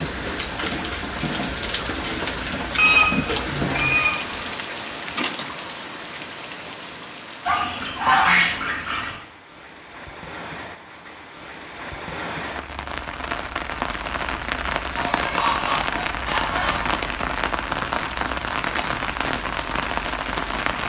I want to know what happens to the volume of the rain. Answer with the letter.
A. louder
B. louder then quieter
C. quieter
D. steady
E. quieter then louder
E.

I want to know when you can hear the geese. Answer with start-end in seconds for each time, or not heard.
2.8-4.3, 7.5-9.2, 14.9-16.9.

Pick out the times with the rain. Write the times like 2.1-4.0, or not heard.
0.0-20.8.